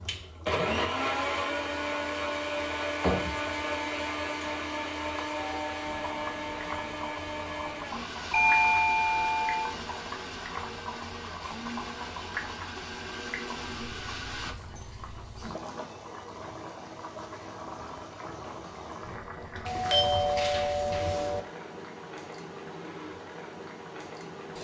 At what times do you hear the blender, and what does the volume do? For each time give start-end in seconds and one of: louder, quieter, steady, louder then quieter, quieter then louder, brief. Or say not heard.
0.1-14.6 quieter.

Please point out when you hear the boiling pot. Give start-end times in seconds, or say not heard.
0.0-24.6.